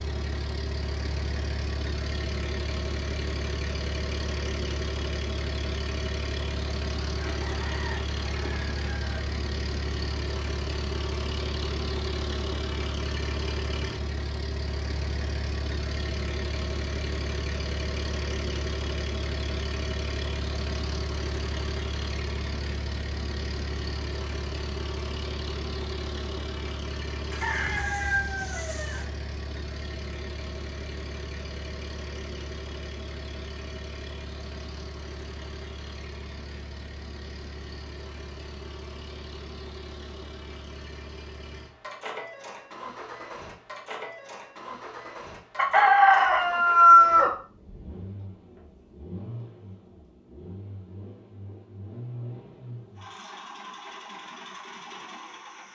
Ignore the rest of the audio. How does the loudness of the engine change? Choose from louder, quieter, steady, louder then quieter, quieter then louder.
quieter.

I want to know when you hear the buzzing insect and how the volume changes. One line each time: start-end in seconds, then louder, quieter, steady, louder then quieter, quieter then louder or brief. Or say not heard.
not heard.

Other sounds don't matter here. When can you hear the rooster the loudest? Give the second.
47 s.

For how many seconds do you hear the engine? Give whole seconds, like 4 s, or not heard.
56 s.